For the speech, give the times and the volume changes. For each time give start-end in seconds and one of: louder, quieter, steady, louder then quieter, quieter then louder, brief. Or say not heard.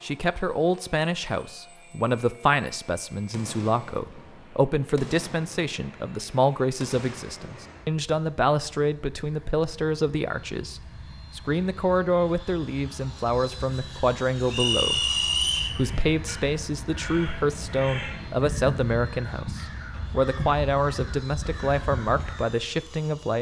0.0-23.3 steady.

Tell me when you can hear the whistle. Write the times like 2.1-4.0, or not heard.
14.5-15.8.